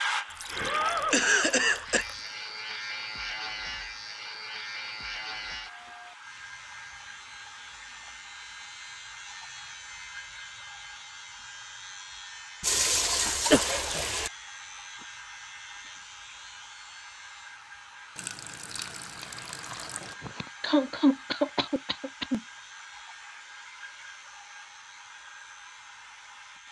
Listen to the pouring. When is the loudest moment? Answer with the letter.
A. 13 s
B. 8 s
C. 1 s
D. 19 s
A.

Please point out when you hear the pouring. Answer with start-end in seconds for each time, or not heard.
0.3-2.3, 12.6-14.3, 18.1-20.1.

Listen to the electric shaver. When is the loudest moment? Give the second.
1 s.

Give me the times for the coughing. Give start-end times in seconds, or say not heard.
1.1-2.0, 12.8-14.1, 19.9-22.4.